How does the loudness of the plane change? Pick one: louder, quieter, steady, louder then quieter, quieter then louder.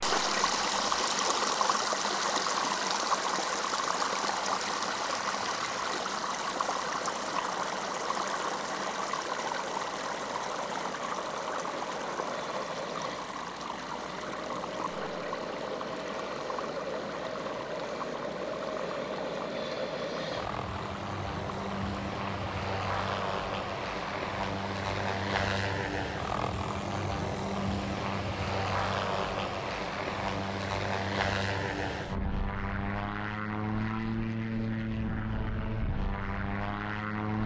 louder.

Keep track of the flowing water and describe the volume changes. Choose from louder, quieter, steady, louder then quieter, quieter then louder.
quieter.